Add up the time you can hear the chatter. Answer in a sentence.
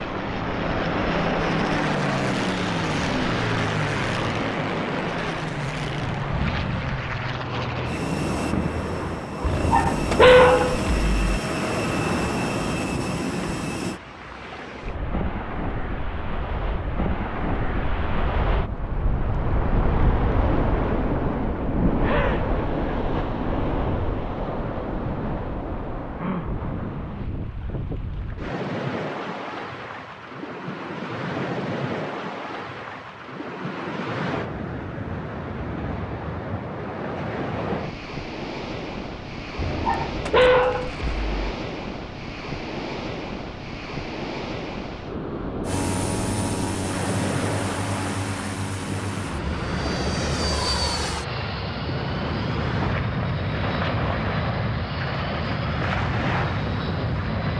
The chatter can't be heard in this clip.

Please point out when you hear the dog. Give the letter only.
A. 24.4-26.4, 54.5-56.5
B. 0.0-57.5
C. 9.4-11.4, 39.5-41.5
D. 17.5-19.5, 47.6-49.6
C.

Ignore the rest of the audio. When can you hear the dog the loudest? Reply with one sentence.
The volume of the dog peaks at 10 seconds.